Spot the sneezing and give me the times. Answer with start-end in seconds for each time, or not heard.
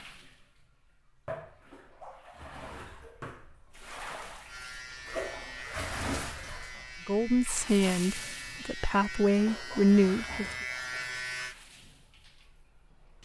not heard.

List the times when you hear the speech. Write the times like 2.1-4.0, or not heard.
7.0-10.4.